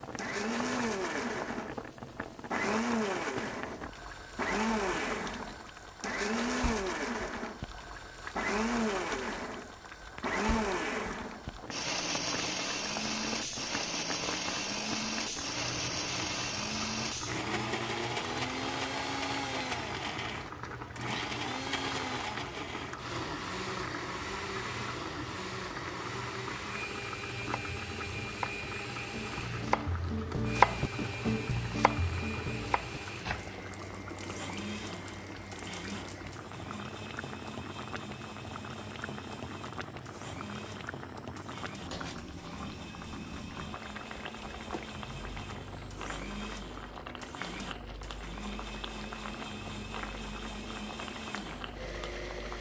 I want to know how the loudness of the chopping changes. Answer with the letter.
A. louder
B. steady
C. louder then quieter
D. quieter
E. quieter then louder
C.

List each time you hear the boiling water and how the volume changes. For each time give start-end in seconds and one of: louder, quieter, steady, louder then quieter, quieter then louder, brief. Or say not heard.
0.0-52.5 steady.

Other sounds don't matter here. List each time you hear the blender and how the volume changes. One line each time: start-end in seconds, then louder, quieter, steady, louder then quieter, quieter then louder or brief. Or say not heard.
0.1-52.5 quieter.